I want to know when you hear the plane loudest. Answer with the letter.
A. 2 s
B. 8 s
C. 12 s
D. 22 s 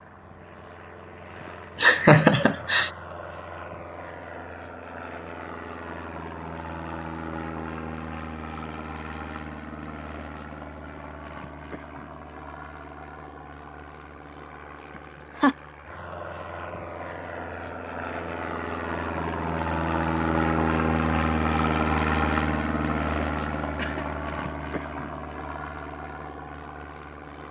D.